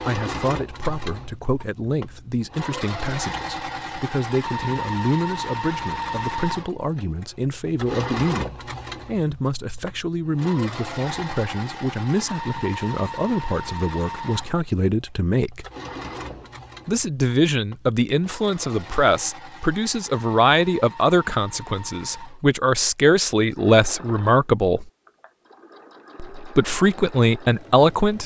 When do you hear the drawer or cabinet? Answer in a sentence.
You can hear the drawer or cabinet from 15.9 to 16.6 s.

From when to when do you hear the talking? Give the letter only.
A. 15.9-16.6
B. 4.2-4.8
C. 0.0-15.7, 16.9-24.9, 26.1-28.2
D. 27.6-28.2
C.